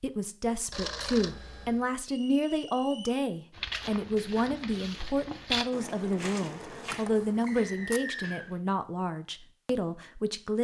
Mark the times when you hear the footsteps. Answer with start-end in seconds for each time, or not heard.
3.5-8.6.